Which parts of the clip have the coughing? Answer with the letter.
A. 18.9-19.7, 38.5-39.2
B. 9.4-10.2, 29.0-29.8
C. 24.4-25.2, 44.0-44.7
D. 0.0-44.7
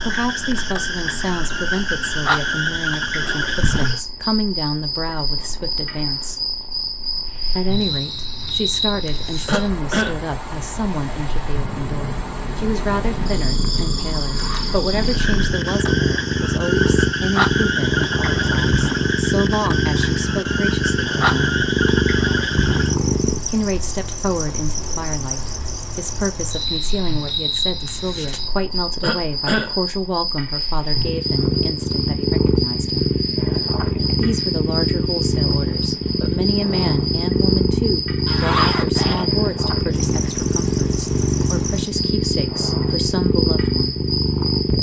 B.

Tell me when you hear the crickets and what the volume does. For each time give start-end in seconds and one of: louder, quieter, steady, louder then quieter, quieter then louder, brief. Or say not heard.
0.0-44.7 steady.